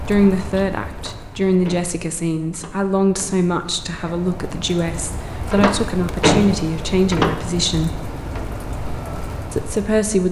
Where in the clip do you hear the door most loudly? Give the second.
6 s.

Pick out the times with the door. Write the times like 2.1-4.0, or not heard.
0.9-3.4, 5.5-7.4.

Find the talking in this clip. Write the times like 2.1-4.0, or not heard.
0.0-8.0, 9.5-10.2.